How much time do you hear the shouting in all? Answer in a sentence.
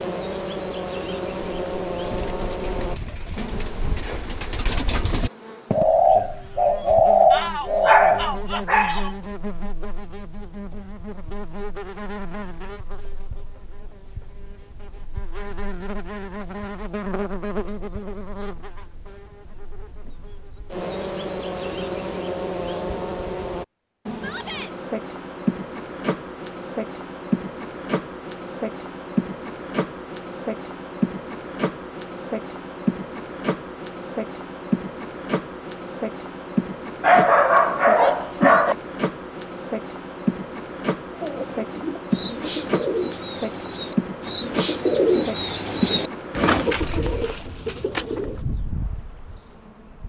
You can hear the shouting for 3 seconds altogether.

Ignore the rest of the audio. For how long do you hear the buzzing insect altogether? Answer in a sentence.
The buzzing insect can be heard for 50 seconds in total.